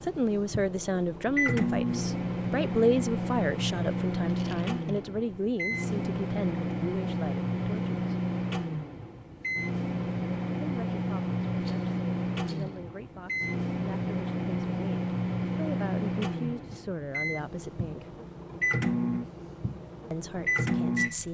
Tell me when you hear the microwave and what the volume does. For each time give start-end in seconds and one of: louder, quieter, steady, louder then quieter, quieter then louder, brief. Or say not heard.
0.0-21.2 steady.